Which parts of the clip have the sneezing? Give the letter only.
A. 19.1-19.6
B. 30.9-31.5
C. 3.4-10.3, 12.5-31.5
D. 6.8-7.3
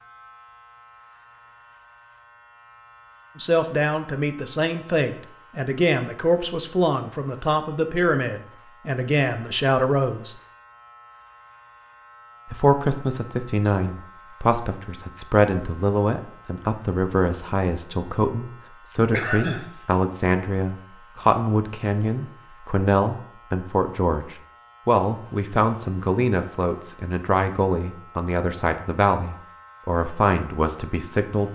A.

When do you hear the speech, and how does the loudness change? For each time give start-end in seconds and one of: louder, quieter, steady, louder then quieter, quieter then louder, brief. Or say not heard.
3.4-10.3 steady
12.5-31.5 steady.